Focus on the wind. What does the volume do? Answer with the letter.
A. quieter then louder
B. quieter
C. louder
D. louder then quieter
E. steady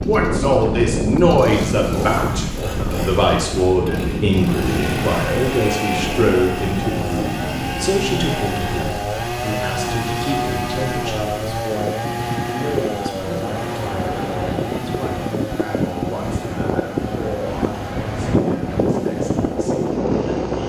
A.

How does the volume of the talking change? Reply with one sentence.
The loudness of the talking goes down.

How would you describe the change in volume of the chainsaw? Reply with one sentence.
The volume of the chainsaw goes up, then down.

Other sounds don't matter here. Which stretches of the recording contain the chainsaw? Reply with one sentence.
You can hear the chainsaw from 0.0 to 20.6 s.